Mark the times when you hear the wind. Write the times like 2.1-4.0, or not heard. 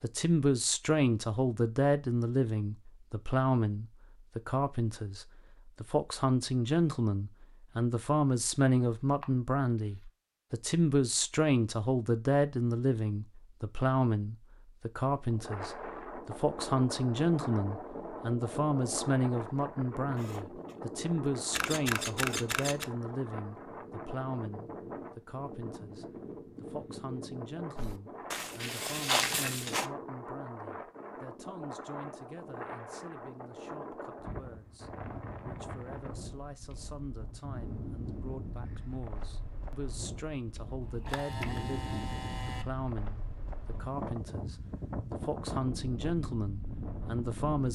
15.2-47.7.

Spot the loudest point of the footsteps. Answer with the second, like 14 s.
29 s.